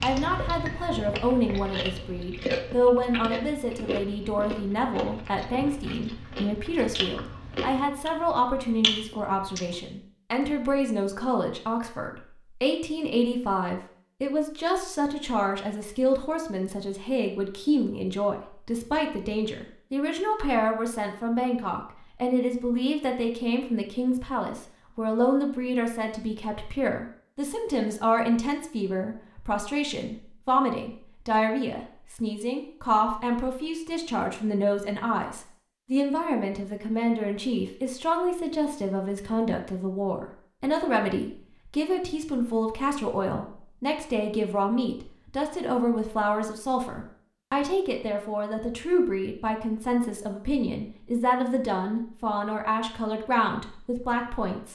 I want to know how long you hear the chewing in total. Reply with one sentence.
You can hear the chewing for 10 seconds altogether.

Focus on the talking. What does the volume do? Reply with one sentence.
The volume of the talking stays about the same.